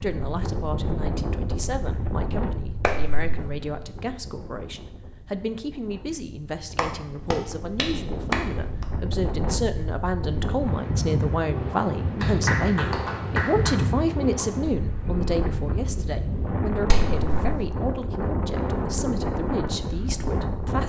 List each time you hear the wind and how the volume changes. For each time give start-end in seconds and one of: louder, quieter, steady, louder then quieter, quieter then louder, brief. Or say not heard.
0.0-20.8 quieter then louder.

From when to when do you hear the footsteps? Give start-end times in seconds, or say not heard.
not heard.